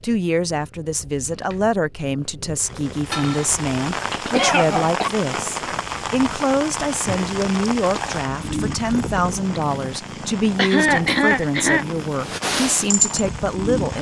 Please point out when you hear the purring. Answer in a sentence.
You can hear the purring from 0.0 to 13.9 s.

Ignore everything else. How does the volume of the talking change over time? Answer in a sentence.
The loudness of the talking stays about the same.